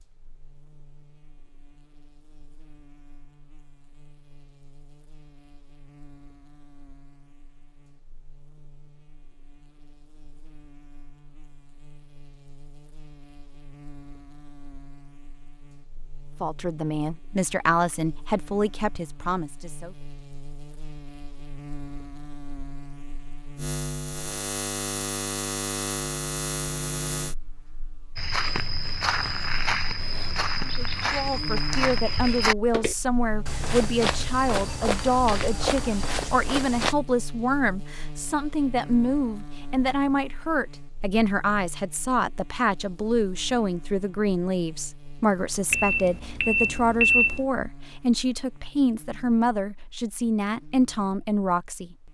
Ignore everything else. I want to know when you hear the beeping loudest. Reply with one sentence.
The volume of the beeping peaks at 47 seconds.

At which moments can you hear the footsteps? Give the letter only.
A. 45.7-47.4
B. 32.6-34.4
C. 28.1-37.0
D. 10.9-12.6
C.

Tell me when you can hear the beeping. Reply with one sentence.
You can hear the beeping from 45.7 to 47.4 s.